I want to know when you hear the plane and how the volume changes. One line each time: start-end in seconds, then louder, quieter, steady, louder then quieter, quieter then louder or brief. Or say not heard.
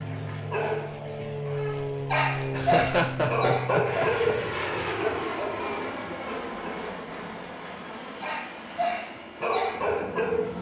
0.0-10.5 quieter.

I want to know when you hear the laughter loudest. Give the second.
3 s.